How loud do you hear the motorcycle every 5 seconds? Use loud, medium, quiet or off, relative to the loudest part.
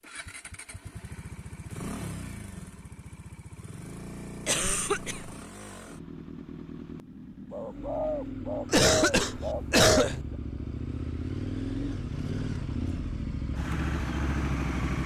medium, medium, loud.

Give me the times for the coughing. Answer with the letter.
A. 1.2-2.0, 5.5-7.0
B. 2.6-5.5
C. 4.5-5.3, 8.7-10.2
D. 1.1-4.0
C.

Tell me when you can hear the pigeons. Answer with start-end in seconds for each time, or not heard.
7.5-10.3.